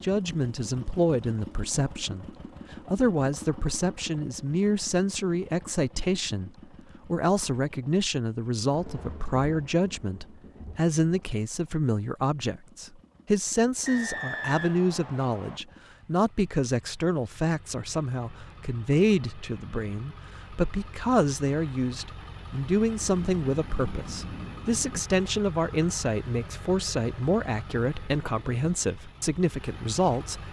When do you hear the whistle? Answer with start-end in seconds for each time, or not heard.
13.8-15.6.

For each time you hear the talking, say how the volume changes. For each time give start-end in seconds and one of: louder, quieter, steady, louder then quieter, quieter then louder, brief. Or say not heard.
0.0-30.4 steady.